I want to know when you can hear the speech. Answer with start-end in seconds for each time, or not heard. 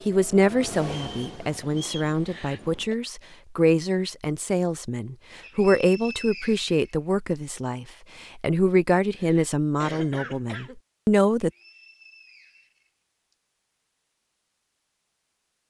0.1-11.5.